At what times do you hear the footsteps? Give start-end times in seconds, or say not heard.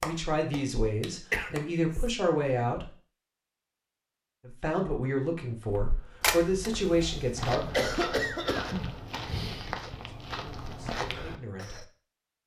5.7-11.8.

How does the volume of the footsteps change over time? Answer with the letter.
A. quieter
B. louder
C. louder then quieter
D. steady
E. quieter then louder
B.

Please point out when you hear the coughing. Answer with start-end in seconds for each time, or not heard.
1.3-2.0, 7.0-8.9.